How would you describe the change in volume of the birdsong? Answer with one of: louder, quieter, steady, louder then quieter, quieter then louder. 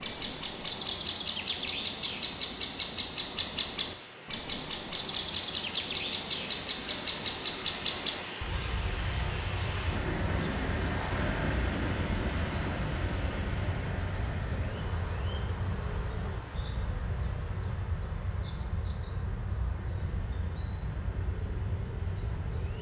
quieter.